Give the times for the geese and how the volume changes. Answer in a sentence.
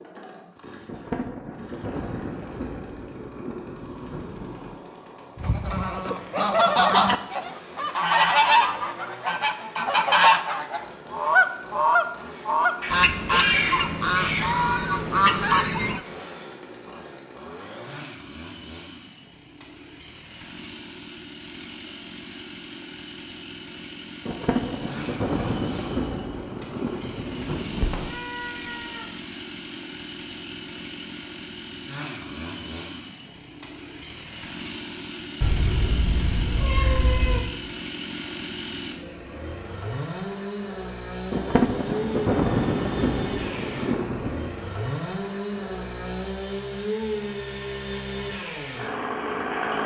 The geese can be heard from 5.3 to 16.0 s, at a steady volume.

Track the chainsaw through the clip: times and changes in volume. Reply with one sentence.
The chainsaw can be heard from 0.0 to 49.8 s, getting louder.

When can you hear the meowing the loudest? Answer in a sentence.
The volume of the meowing peaks at 14 seconds.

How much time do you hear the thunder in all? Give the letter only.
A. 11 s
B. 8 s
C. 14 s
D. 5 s
A.